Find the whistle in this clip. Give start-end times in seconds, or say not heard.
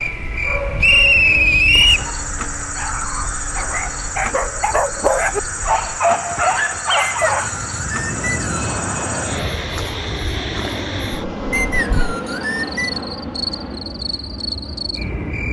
0.8-2.1, 7.0-8.7, 11.5-12.9.